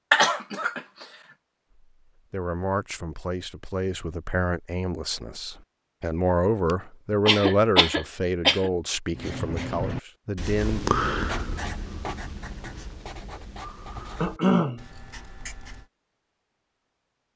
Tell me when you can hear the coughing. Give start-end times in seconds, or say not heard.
0.1-0.8, 7.2-8.7, 14.2-14.8.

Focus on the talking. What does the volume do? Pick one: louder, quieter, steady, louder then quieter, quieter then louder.
louder then quieter.